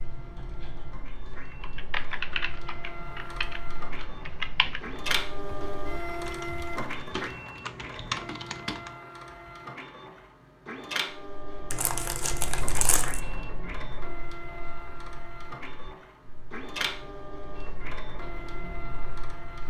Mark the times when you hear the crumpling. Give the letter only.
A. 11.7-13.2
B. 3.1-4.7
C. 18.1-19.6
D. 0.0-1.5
A.